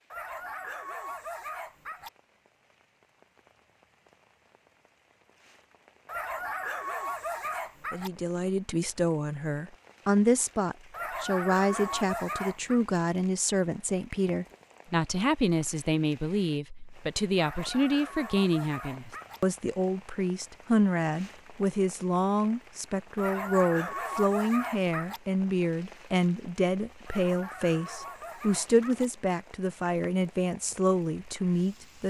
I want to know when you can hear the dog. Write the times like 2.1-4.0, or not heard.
0.1-2.1, 6.0-8.1, 10.9-12.8, 17.4-19.4, 23.1-25.2, 27.1-29.1.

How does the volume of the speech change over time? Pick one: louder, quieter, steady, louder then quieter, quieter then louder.
steady.